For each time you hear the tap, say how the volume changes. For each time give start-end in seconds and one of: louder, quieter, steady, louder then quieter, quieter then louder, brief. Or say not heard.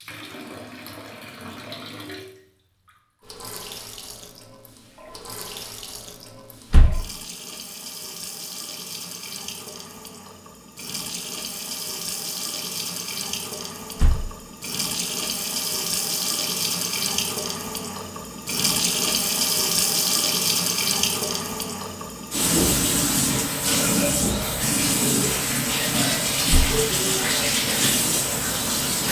0.0-29.0 louder.